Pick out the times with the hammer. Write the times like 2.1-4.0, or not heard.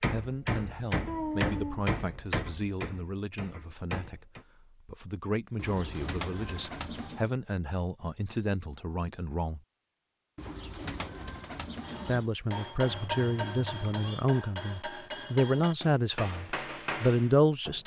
0.0-4.5, 11.8-17.8.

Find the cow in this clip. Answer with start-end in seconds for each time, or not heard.
not heard.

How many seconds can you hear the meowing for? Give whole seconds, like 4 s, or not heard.
2 s.